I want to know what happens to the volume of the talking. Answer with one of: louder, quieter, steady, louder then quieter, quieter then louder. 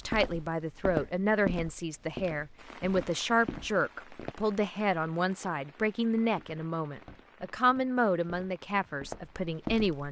steady.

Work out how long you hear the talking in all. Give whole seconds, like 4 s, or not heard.
10 s.